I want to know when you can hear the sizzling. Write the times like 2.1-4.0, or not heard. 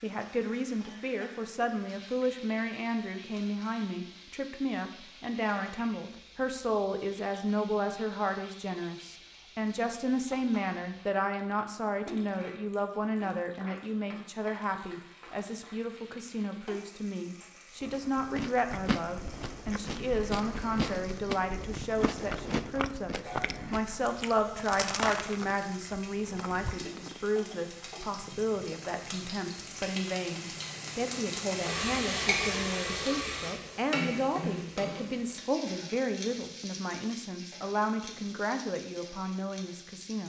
0.0-40.2.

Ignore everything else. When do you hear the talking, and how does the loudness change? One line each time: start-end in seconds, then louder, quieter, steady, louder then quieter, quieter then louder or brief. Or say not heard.
0.0-40.2 steady.